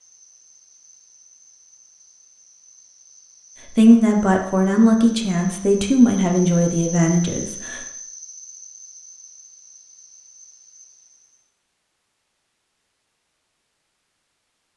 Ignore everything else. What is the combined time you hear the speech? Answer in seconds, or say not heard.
4 s.